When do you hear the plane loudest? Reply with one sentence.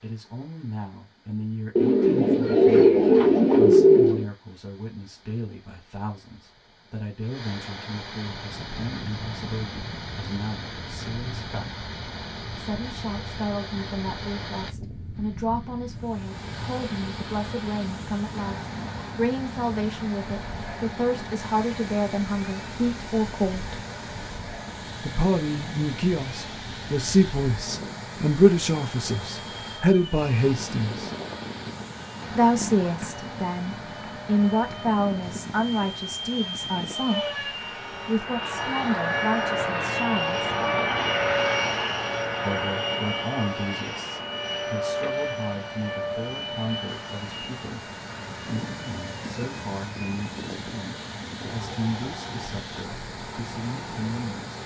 The volume of the plane peaks at 41 seconds.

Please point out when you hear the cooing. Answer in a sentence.
The cooing can be heard from 1.8 to 4.2 s.